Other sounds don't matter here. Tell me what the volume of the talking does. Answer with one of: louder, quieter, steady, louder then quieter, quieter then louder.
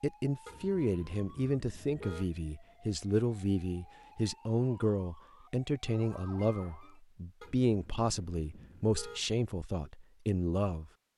steady.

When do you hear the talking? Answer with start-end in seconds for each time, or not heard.
0.0-10.9.